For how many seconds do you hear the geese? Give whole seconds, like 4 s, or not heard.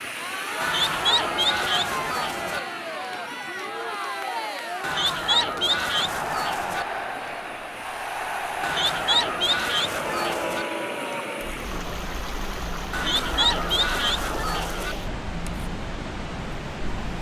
8 s.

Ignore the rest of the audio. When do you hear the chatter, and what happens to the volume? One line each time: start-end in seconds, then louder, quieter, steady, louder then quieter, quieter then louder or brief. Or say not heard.
0.1-17.1 quieter.